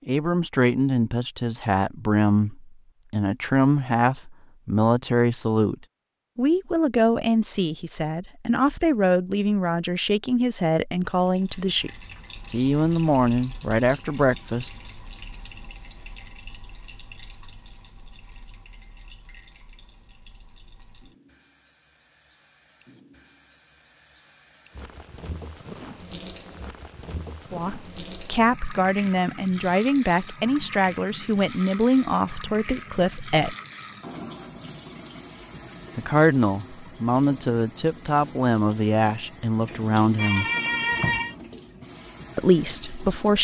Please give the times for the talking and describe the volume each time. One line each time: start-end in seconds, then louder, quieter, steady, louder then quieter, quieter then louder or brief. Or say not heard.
0.1-11.9 steady
12.5-14.7 brief
27.5-33.5 steady
36.0-40.5 steady
42.4-43.3 brief.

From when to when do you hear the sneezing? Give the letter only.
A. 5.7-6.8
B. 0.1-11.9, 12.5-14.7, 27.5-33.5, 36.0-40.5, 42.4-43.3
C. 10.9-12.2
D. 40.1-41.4
D.